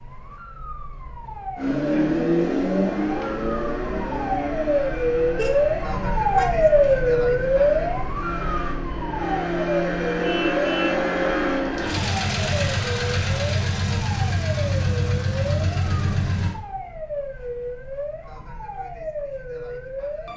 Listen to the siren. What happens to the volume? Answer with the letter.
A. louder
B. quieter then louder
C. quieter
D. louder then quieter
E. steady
D.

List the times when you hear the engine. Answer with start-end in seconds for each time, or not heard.
1.6-16.6.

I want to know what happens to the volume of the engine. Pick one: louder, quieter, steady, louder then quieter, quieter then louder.
quieter then louder.